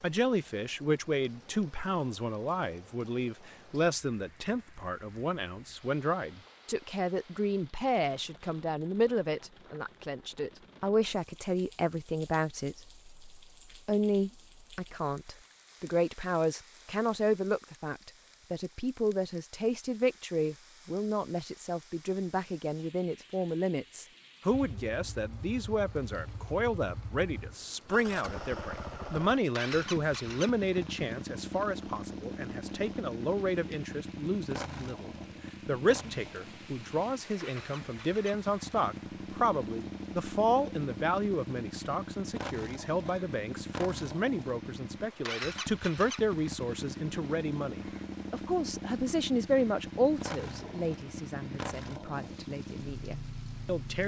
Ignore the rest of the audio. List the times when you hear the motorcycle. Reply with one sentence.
You can hear the motorcycle from 24.5 to 54.0 s.